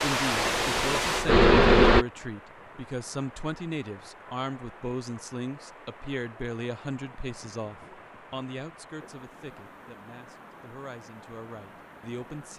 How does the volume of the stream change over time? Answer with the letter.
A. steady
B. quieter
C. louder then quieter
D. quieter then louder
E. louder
B.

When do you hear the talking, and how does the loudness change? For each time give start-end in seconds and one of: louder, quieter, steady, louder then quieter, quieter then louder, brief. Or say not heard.
0.0-12.5 quieter.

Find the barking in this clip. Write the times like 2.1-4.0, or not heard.
not heard.